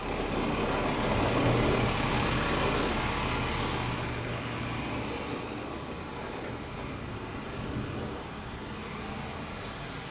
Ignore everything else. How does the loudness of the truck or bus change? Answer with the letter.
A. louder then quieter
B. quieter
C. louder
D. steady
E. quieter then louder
B.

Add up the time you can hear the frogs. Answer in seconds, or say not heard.
not heard.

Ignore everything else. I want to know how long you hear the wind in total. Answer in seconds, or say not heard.
8 s.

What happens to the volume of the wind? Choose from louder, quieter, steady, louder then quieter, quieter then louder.
quieter.